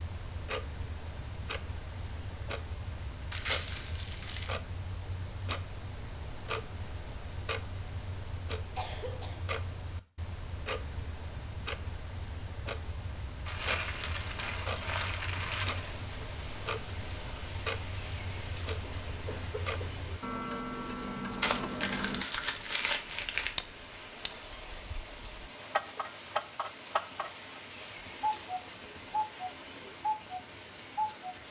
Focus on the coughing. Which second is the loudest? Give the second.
9 s.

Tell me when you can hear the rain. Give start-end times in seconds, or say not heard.
13.7-31.4.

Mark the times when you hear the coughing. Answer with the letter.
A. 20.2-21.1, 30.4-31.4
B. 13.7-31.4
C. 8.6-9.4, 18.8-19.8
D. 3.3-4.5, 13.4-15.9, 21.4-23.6
C.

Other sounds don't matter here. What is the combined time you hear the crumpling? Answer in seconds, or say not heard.
6 s.